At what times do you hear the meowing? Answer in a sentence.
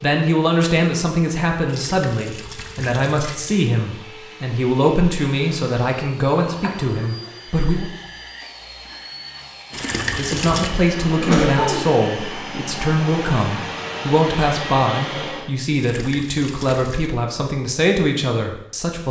The meowing can't be heard in this clip.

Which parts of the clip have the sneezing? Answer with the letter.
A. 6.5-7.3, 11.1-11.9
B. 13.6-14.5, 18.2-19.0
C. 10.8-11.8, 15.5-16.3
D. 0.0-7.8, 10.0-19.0
A.